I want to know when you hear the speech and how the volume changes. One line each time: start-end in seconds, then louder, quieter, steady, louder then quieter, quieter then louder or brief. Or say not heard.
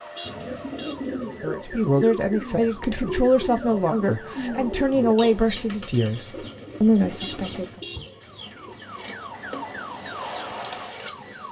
1.4-7.8 steady.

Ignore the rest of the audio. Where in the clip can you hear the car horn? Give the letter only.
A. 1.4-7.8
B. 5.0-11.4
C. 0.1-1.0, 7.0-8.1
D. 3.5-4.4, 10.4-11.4
C.